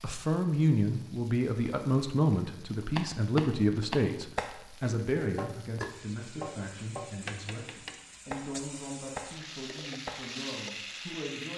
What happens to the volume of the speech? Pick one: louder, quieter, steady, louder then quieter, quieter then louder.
quieter.